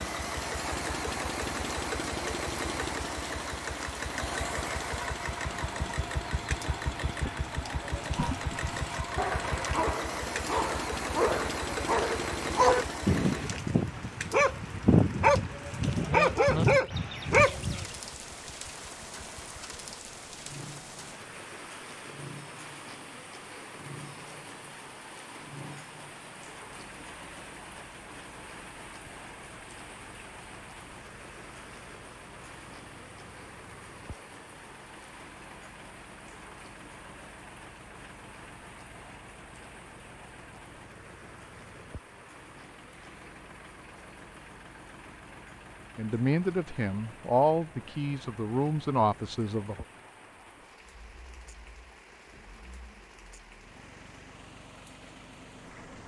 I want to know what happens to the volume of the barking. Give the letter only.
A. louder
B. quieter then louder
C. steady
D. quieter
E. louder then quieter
A.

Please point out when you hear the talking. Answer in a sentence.
The talking can be heard from 46.0 to 49.9 s.